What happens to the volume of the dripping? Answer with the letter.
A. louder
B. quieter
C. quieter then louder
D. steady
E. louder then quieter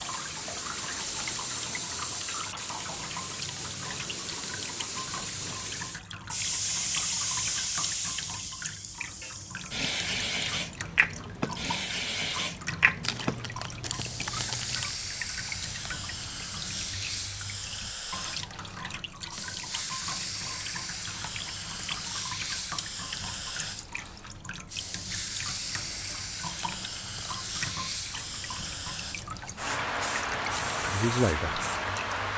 D.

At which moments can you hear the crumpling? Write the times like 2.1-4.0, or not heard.
1.3-2.1, 13.0-14.9, 26.6-27.6.